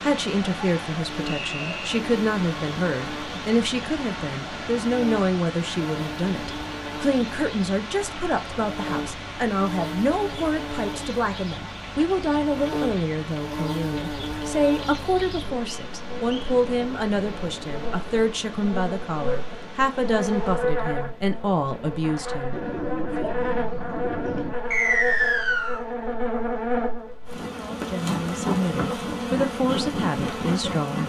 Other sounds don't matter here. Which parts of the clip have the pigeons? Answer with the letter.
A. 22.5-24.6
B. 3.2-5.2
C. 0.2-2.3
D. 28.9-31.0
A.